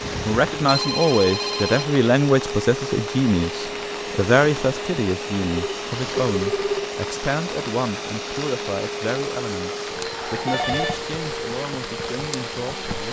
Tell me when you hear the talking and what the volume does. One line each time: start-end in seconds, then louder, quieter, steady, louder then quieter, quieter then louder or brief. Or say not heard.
0.2-13.0 quieter.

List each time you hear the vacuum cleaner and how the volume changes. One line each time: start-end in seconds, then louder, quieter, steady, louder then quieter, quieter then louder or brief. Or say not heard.
0.0-13.0 steady.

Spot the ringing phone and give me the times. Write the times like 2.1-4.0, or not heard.
0.7-1.9, 5.5-6.9, 10.2-11.0.